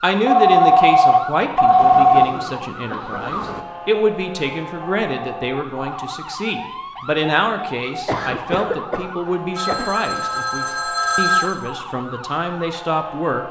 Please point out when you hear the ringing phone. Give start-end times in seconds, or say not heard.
0.2-2.2, 5.0-6.1, 9.6-11.4.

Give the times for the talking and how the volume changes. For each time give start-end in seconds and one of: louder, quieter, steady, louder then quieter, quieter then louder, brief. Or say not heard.
0.0-13.4 steady.